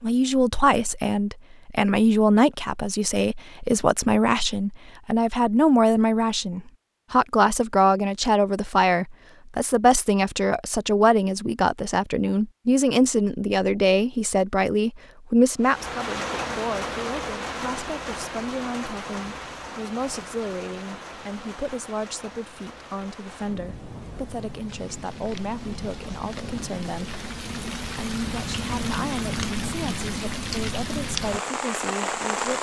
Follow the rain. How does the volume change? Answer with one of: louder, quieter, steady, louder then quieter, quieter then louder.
quieter then louder.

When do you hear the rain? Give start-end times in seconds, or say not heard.
15.6-32.5.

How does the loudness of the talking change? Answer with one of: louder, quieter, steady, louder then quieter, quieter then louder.
quieter.